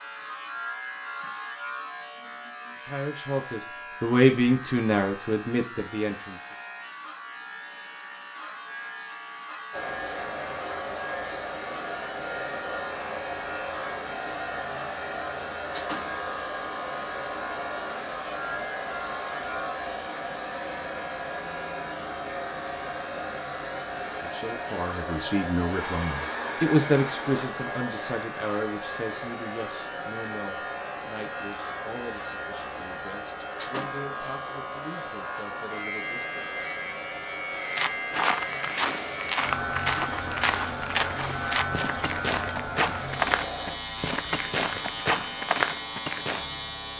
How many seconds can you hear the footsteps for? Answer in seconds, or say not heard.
9 s.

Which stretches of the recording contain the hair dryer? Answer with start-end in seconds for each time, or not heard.
9.7-43.8.